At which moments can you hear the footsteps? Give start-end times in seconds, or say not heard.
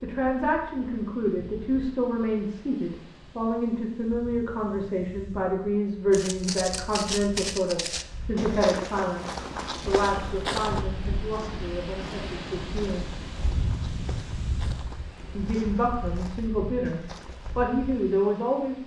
6.1-17.6.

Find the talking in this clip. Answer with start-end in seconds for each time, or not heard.
0.0-13.1, 15.3-18.8.